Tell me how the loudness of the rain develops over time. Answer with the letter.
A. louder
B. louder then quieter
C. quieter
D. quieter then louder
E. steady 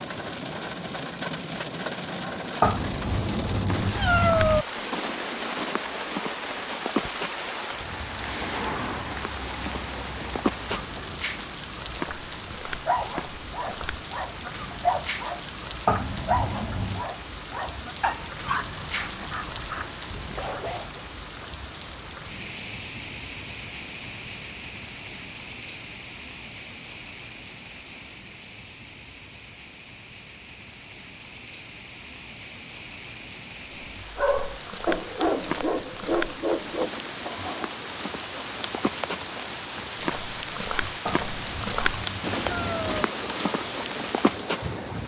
D.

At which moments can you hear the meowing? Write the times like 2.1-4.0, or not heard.
2.6-4.7, 15.8-17.1, 41.0-43.0.